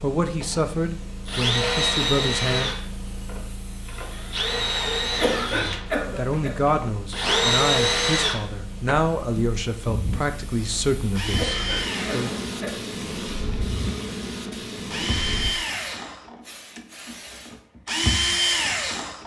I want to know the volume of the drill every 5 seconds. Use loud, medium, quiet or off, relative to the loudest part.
loud, loud, medium, loud.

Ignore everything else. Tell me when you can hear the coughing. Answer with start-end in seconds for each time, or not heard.
5.1-6.5, 11.3-12.9.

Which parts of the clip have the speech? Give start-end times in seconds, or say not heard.
0.0-2.8, 5.5-12.3.